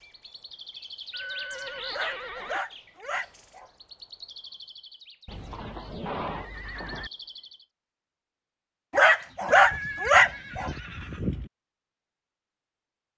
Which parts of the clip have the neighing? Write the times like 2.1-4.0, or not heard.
1.1-2.6, 5.2-7.1, 9.4-11.5.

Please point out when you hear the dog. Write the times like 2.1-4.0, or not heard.
1.9-3.7, 8.9-10.7.